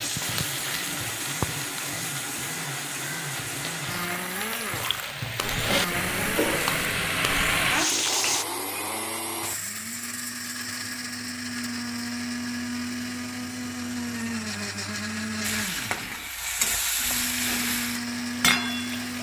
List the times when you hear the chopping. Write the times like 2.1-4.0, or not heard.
not heard.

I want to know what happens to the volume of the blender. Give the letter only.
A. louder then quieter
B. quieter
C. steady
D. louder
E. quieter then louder
C.